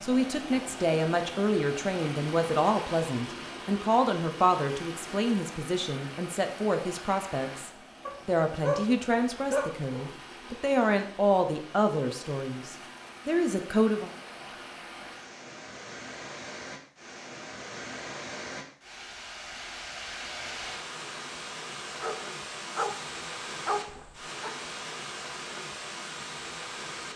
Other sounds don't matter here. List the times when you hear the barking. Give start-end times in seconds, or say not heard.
8.1-10.1, 22.0-24.6.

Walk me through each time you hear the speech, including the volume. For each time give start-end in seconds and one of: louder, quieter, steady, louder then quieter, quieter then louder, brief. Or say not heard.
0.0-14.1 steady.